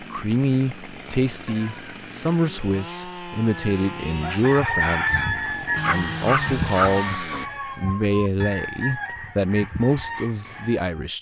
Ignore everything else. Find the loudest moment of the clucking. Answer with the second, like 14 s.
5 s.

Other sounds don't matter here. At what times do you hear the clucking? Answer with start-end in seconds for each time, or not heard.
3.5-11.1.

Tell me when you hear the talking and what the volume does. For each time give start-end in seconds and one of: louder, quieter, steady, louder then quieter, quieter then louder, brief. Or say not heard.
0.0-11.1 steady.